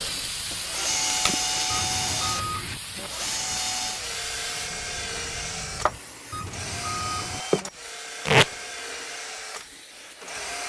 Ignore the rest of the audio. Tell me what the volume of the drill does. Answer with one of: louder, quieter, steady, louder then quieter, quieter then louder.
quieter.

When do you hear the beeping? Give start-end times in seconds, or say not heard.
1.6-3.1, 6.3-7.7.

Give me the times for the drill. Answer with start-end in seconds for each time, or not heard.
0.0-10.6.